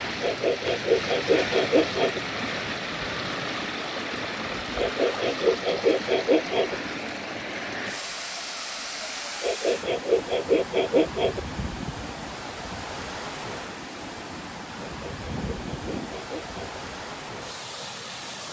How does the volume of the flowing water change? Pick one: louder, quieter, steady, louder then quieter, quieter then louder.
quieter.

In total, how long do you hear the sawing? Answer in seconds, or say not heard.
8 s.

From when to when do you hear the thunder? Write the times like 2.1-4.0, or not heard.
15.2-16.1.